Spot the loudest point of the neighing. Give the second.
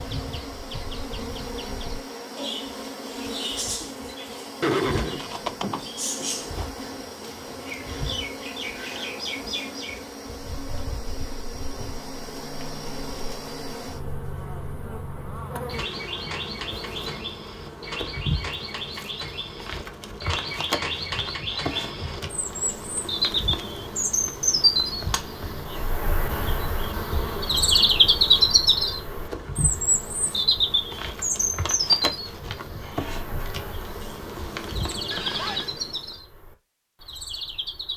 5 s.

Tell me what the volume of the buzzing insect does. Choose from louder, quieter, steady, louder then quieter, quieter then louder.
steady.